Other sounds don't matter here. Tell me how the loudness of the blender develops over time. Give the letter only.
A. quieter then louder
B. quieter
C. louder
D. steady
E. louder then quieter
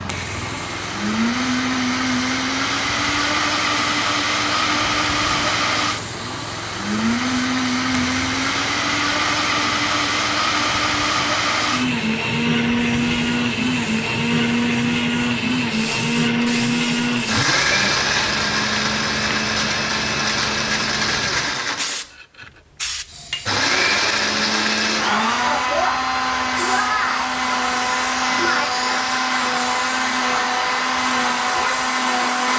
D.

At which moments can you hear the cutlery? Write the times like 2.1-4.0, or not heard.
not heard.